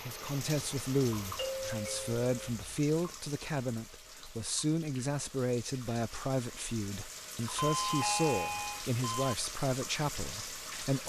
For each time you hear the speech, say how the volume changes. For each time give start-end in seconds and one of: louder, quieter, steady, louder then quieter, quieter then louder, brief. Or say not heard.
0.1-11.0 steady.